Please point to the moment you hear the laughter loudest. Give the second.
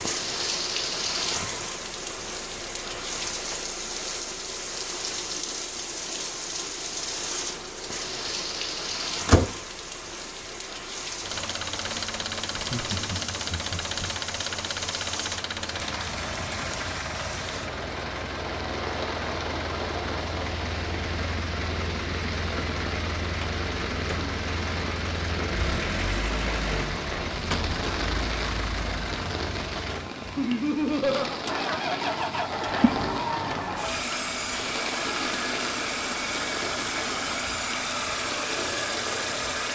31 s.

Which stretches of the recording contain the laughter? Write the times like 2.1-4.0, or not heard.
12.5-14.1, 30.4-31.4.